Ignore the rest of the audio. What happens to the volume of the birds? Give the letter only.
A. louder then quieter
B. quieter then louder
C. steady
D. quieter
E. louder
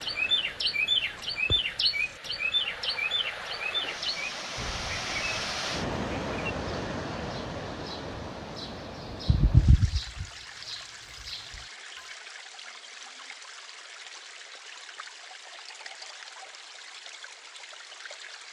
B.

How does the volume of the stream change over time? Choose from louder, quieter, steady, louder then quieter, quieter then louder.
louder then quieter.